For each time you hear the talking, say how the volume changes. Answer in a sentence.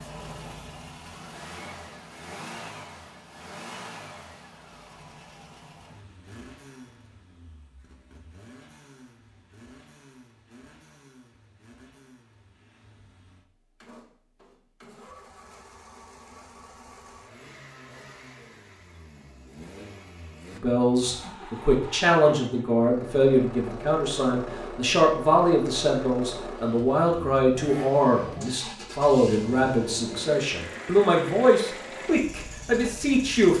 You can hear the talking from 20.5 to 33.5 s, at a steady volume.